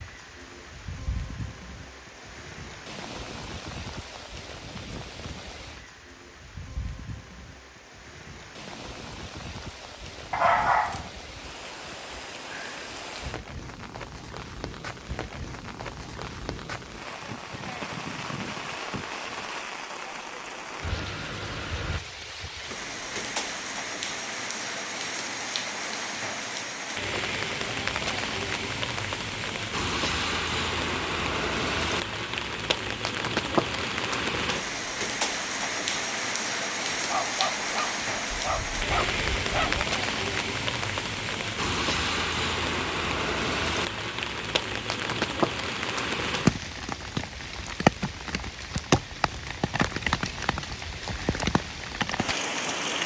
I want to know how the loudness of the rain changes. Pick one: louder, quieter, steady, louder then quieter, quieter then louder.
louder.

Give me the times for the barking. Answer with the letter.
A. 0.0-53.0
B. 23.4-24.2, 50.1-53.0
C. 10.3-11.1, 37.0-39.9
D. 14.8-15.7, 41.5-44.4
C.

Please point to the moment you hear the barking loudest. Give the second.
11 s.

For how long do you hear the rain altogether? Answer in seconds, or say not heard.
53 s.